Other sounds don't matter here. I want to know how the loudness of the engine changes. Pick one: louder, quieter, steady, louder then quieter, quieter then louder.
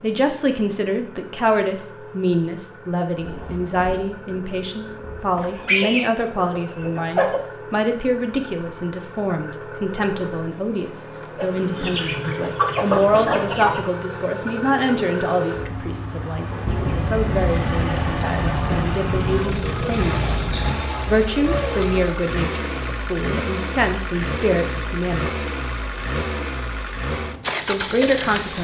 louder.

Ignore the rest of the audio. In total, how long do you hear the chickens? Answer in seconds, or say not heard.
7 s.